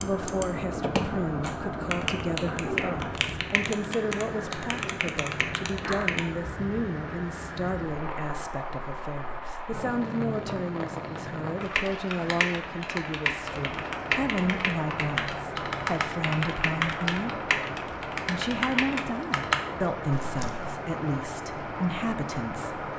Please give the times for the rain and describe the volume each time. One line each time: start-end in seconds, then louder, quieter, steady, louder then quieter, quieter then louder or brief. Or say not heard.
0.0-22.9 steady.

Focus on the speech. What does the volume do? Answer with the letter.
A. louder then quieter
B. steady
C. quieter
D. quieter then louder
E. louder
B.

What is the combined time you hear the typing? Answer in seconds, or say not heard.
15 s.